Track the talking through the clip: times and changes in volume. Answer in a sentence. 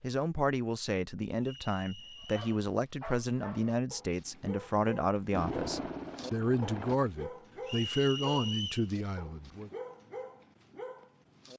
You can hear the talking from 0.0 to 9.7 s, at a steady volume.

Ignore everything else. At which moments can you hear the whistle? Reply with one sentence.
You can hear the whistle from 1.4 to 2.5 s and from 7.7 to 8.9 s.